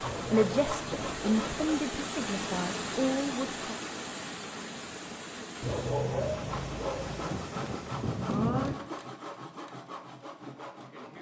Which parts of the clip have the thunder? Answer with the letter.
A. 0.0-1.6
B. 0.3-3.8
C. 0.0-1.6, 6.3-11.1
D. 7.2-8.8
D.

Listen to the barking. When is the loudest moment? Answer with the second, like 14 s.
6 s.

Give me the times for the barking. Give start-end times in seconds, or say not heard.
0.0-1.9, 5.6-7.3.